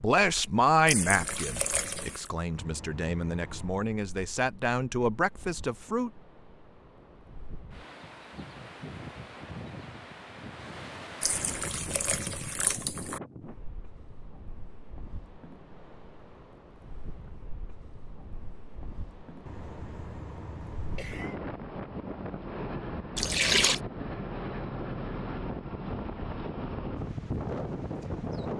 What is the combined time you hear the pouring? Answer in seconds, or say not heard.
4 s.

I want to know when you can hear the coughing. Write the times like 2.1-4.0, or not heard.
2.5-3.9, 11.5-12.3, 19.4-21.4.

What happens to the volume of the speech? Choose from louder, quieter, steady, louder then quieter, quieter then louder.
quieter then louder.